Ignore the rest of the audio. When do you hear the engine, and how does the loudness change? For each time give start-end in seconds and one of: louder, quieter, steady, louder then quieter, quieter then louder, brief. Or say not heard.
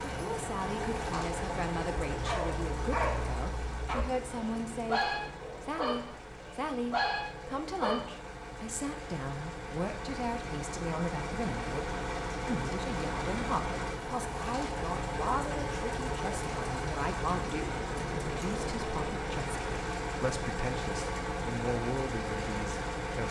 0.0-23.2 quieter then louder.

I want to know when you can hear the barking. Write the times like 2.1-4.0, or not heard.
2.0-8.1.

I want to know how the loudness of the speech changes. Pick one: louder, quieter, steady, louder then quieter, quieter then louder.
steady.